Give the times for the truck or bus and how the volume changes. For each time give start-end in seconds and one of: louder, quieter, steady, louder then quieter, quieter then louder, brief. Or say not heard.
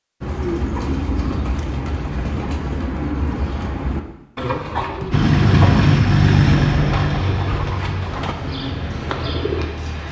5.1-10.0 quieter.